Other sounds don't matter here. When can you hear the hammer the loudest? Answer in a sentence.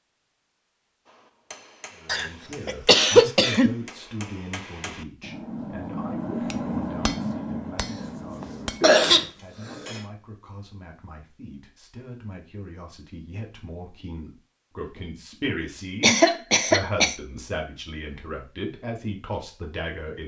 The volume of the hammer peaks at 7 seconds.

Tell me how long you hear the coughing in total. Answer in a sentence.
The coughing can be heard for 5 seconds in total.